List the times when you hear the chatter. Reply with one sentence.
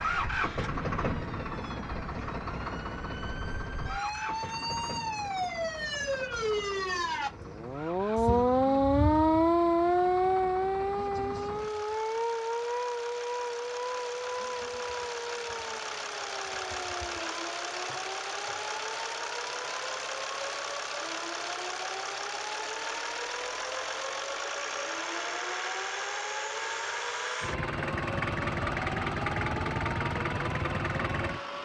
You can't hear the chatter here.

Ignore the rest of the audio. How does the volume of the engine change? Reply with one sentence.
The loudness of the engine goes down, then up.